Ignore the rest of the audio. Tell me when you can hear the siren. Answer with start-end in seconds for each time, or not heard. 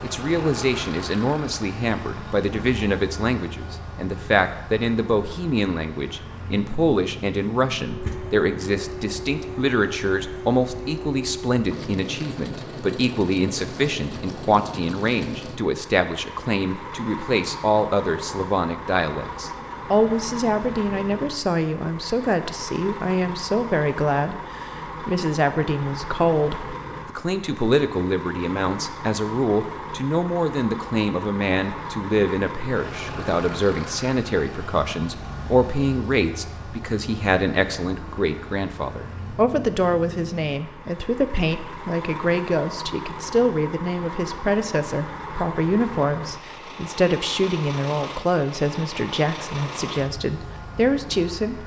not heard.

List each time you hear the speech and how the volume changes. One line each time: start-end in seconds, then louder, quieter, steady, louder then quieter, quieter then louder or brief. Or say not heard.
0.0-51.6 steady.